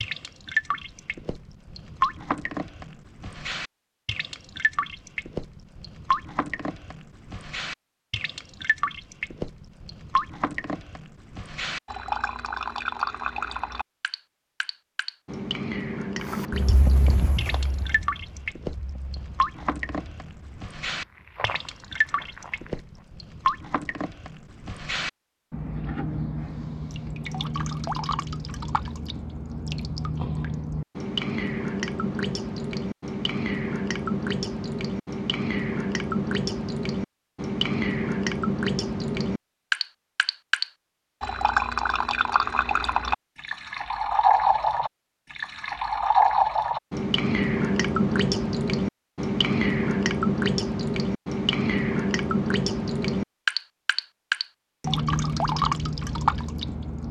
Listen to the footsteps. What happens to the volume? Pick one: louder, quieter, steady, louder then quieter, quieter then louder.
quieter then louder.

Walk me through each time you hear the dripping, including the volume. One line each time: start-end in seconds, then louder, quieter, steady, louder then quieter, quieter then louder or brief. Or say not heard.
0.0-57.0 louder.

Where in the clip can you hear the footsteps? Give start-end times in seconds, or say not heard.
16.2-23.1.